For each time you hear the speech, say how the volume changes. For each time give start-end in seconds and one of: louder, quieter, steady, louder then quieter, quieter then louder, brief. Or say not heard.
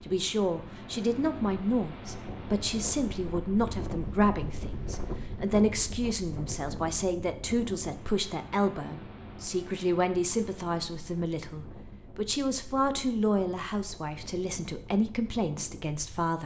0.1-16.4 steady.